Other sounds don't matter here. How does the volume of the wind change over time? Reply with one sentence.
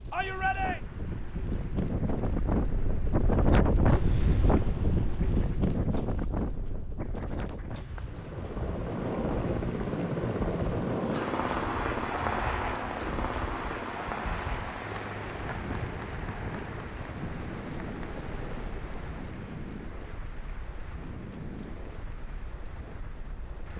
The volume of the wind goes down.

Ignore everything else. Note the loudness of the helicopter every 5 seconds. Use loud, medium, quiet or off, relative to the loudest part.
off, loud, loud, medium, off.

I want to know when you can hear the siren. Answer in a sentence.
You can't hear the siren here.